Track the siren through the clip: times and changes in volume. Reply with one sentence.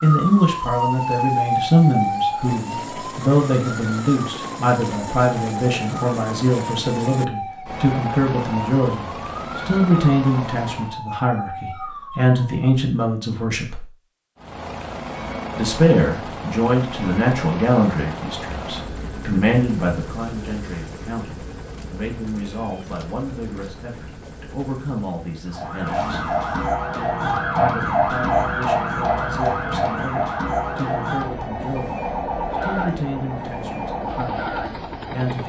You can hear the siren from 0.0 to 12.7 s, getting quieter; and from 25.4 to 35.4 s, getting quieter.